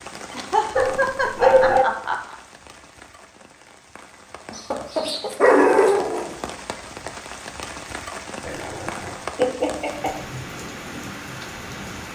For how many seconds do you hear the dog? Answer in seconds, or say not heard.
4 s.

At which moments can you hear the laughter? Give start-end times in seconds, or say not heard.
0.3-2.4, 4.5-5.3, 9.3-10.2.